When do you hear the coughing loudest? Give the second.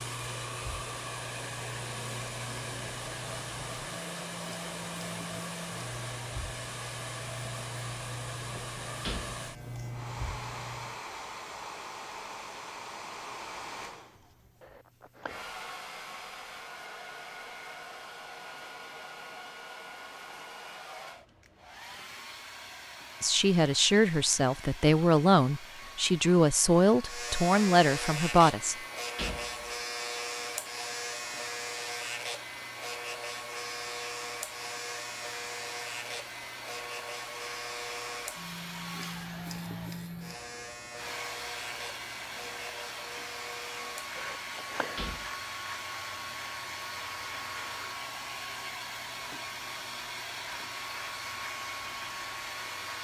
45 s.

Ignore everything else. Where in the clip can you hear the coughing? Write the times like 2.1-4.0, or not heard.
14.6-15.4, 44.1-45.0.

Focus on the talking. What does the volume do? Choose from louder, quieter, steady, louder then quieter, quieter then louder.
steady.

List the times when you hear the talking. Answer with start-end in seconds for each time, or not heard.
23.2-28.8.